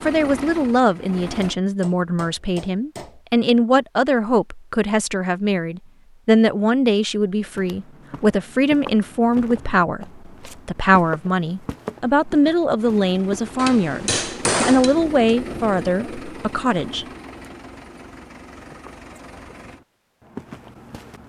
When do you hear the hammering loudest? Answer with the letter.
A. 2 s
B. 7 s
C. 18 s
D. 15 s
D.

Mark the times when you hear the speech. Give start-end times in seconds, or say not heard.
0.0-17.1.